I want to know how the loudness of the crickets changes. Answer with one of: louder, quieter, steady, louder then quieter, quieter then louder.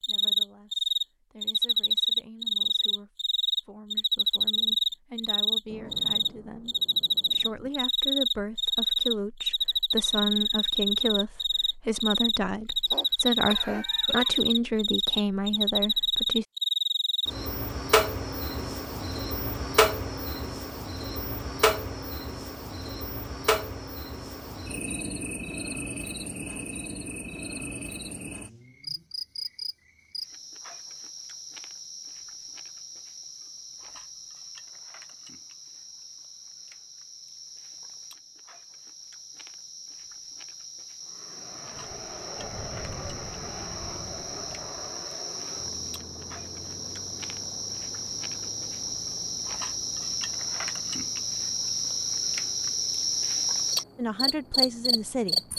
quieter then louder.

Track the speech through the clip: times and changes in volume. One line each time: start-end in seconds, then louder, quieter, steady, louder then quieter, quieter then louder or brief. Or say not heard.
0.0-16.4 louder
54.0-55.4 brief.